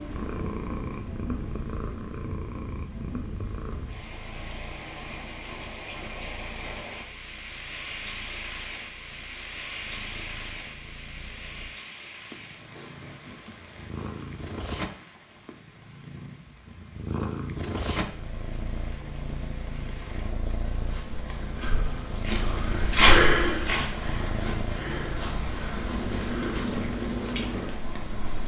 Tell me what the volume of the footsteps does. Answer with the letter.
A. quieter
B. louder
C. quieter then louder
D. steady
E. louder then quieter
E.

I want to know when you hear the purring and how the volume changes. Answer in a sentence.
The purring can be heard from 0.0 to 28.4 s, getting quieter then louder.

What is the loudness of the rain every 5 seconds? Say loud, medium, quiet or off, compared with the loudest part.
loud, loud, medium, quiet, loud, loud.